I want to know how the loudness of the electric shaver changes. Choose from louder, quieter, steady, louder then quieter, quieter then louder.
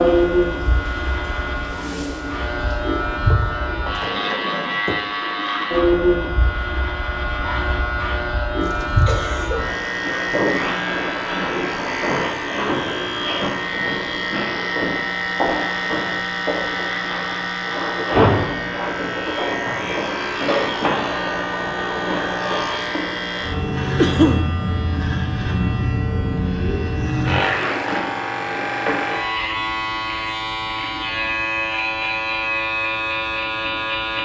steady.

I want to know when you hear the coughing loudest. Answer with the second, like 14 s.
24 s.